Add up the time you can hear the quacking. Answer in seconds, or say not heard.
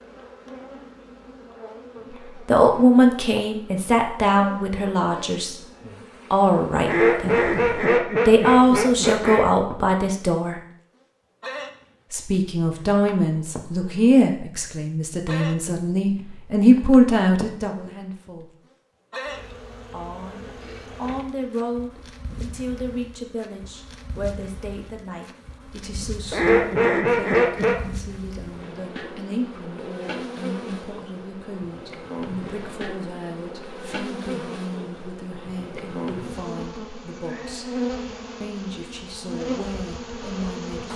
4 s.